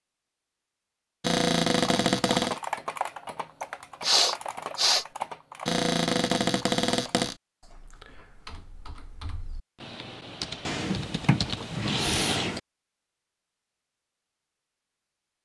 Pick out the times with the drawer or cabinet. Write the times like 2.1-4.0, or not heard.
1.2-2.6, 5.7-7.3, 10.7-12.6.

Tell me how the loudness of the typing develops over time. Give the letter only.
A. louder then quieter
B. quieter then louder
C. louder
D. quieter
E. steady
B.